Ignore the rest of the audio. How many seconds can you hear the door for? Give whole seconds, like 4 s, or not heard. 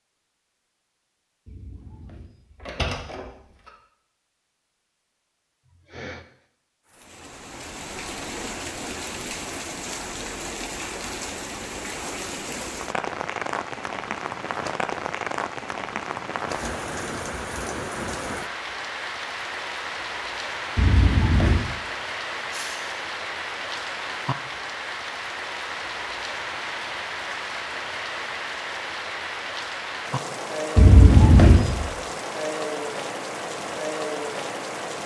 4 s.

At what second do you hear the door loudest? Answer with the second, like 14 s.
31 s.